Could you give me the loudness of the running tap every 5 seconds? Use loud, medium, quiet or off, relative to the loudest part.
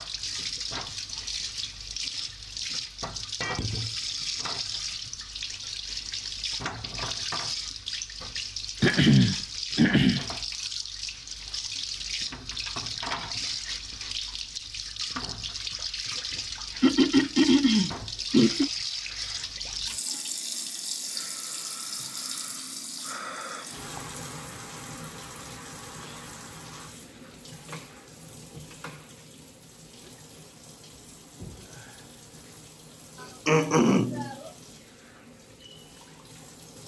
loud, loud, loud, loud, loud, medium, quiet, quiet.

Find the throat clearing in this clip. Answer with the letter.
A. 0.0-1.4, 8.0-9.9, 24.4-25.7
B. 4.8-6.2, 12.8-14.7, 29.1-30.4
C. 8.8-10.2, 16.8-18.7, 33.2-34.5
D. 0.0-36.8
C.